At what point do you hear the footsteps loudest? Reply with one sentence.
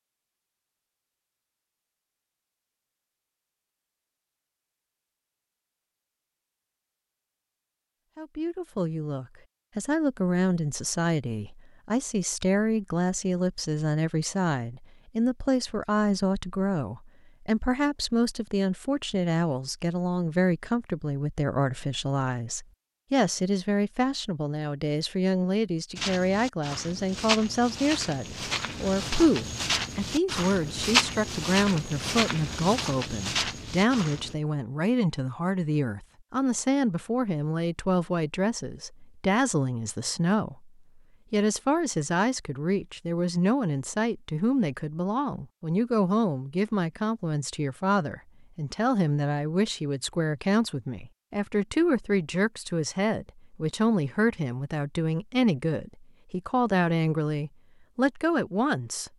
The volume of the footsteps peaks at 31 seconds.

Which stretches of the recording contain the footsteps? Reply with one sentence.
You can hear the footsteps from 25.9 to 34.4 s.